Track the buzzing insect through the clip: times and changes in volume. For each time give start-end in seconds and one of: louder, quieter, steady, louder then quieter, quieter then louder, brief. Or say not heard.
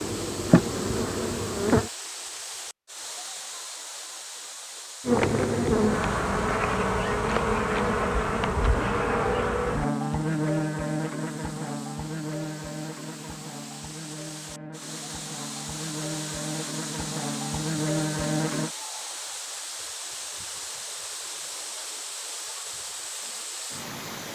0.0-1.9 brief
5.0-18.7 quieter then louder.